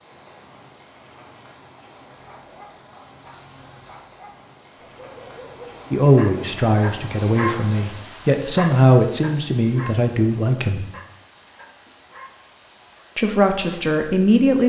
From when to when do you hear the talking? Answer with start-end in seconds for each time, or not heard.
5.9-10.8, 13.2-14.6.